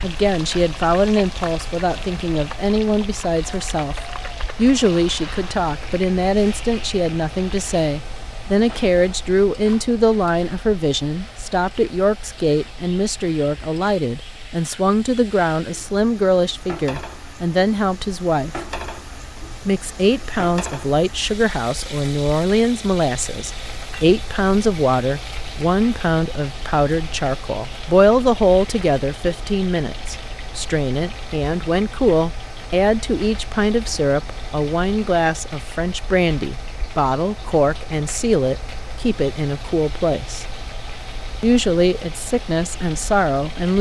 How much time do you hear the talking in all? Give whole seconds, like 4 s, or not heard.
41 s.